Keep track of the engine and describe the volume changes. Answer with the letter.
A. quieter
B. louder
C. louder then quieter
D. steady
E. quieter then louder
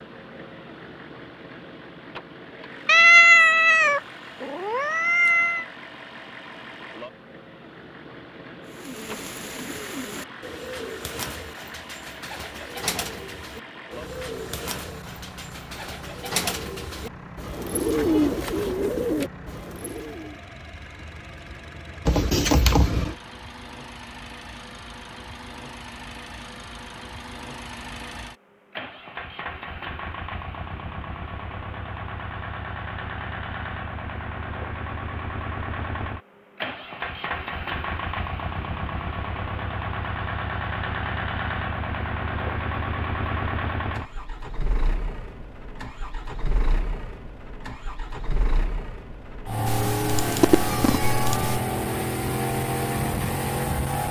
B.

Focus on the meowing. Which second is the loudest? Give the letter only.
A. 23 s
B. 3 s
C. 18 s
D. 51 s
B.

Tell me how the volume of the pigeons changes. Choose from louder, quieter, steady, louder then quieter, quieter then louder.
louder.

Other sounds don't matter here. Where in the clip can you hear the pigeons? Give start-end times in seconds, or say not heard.
8.7-20.4.